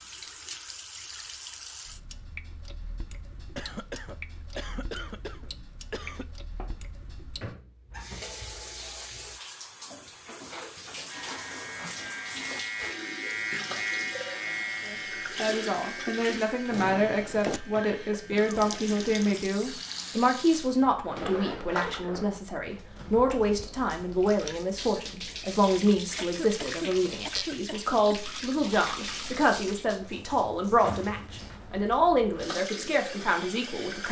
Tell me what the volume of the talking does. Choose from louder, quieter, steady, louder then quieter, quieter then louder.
steady.